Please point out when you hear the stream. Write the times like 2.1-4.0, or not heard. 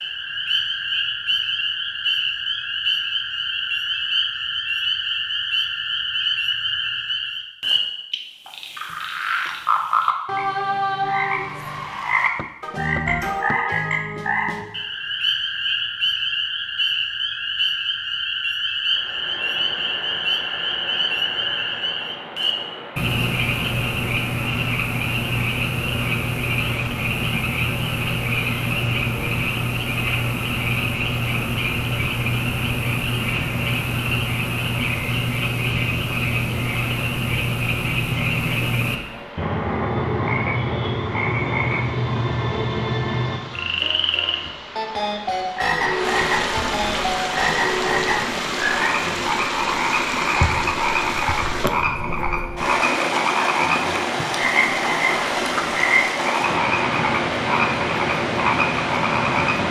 18.8-59.6.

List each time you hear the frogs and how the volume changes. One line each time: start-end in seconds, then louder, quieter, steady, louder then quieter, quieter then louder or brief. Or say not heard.
0.0-59.6 steady.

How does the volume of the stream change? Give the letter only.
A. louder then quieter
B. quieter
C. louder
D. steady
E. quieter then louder
C.